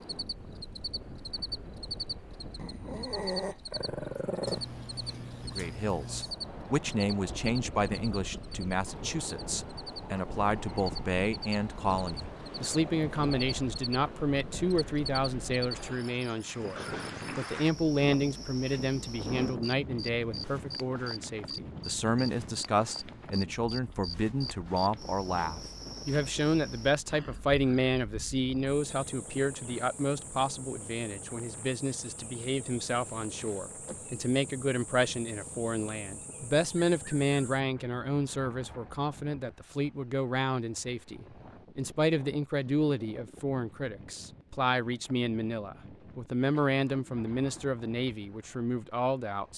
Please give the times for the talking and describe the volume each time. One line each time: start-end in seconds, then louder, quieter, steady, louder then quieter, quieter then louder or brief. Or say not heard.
5.5-49.5 steady.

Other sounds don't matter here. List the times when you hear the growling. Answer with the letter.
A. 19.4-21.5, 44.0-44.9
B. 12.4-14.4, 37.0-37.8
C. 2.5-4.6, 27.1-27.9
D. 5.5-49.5
C.